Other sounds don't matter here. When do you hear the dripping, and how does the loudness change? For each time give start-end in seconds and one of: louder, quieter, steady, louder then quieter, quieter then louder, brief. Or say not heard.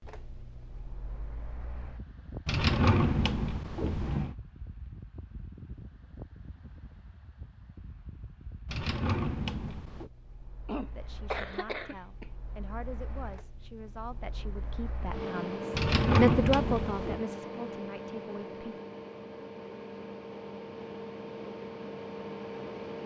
not heard.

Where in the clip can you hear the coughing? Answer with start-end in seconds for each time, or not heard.
10.7-12.3.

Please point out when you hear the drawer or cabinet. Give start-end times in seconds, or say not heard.
2.5-4.3, 8.7-10.1, 15.7-17.2.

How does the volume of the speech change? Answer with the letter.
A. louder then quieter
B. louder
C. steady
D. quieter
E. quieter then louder
A.